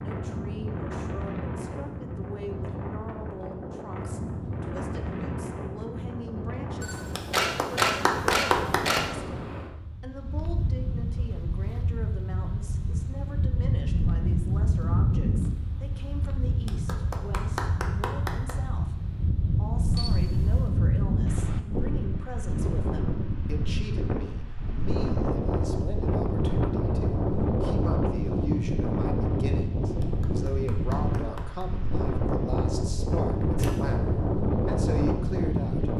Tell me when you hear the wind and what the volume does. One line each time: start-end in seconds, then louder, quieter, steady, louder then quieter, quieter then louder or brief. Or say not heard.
0.0-35.9 louder.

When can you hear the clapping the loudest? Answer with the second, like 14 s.
8 s.